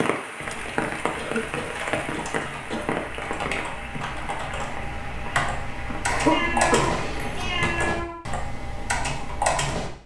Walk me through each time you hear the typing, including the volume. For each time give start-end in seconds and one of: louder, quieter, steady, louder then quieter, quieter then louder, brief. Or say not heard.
0.4-9.9 louder.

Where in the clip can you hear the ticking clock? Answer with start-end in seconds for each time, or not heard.
not heard.